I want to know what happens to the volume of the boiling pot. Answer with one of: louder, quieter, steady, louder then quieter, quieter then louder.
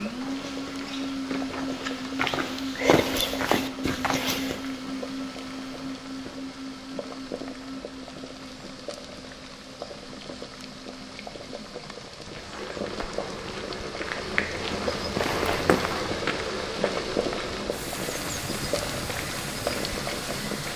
louder.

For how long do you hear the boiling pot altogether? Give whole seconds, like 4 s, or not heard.
21 s.